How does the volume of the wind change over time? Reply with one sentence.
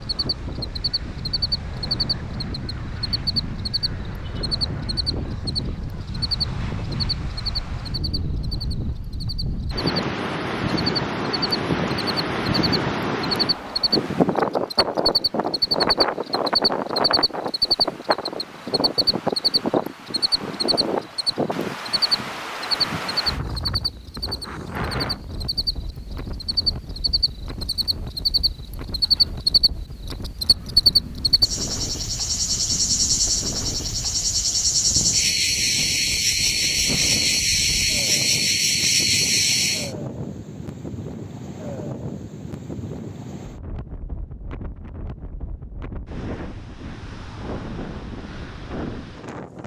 The loudness of the wind goes up, then down.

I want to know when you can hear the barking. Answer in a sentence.
You can't hear the barking here.